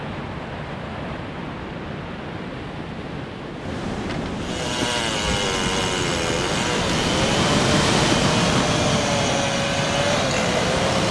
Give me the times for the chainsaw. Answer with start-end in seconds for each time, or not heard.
4.3-11.0.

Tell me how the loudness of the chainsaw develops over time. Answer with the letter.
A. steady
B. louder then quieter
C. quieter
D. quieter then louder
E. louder
A.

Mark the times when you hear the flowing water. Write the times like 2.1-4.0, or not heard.
0.0-11.0.